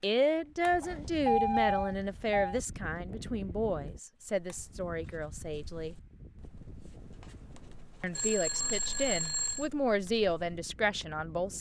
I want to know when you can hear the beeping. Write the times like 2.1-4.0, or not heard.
0.8-2.6, 8.2-9.7.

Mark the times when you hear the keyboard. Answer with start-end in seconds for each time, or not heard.
not heard.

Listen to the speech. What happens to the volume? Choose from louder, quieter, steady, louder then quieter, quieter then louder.
quieter then louder.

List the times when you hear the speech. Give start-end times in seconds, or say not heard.
0.0-6.0, 8.0-11.5.